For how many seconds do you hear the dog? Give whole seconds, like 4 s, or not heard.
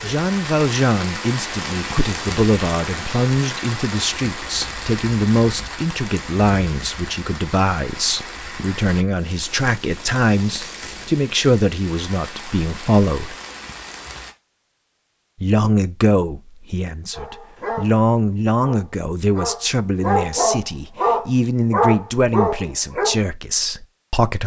6 s.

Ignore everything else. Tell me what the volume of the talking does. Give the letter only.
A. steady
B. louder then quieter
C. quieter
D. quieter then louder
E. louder
A.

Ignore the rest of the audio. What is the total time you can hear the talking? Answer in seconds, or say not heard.
22 s.